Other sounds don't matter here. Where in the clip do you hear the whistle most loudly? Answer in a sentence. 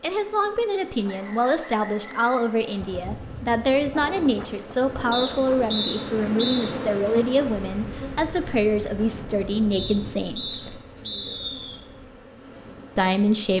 The volume of the whistle peaks at 6 seconds.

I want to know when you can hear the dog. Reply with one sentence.
You can't hear the dog here.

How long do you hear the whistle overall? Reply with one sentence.
You can hear the whistle for 6 seconds altogether.